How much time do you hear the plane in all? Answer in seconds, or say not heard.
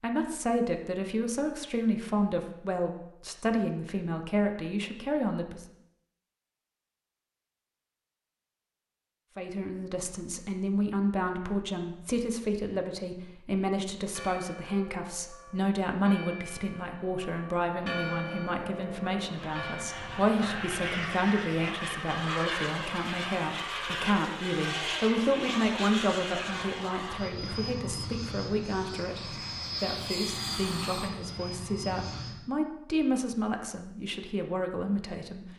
15 s.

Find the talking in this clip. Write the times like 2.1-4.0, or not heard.
0.0-5.7, 9.3-35.5.